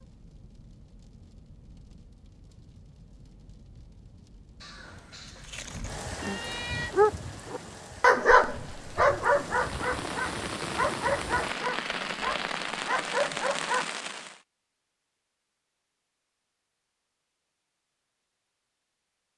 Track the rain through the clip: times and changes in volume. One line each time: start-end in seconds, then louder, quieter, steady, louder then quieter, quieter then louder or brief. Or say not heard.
0.0-14.4 louder.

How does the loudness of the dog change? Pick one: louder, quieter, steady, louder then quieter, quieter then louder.
quieter.